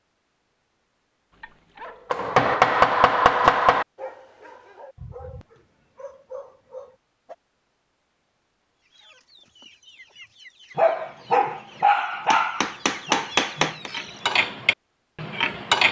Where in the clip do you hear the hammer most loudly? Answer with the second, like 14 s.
3 s.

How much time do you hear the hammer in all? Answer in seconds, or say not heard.
3 s.